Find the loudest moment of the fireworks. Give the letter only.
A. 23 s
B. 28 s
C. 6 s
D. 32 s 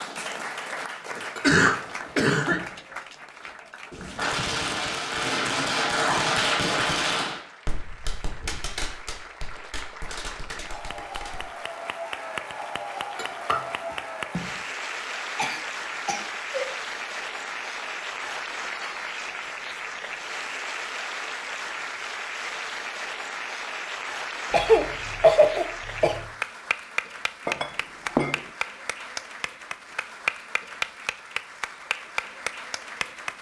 C.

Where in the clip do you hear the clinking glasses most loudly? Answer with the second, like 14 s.
28 s.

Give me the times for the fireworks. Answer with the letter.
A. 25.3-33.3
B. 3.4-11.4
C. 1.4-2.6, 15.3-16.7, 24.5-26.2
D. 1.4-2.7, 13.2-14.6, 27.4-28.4
B.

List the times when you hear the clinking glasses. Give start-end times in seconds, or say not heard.
1.4-2.7, 13.2-14.6, 27.4-28.4.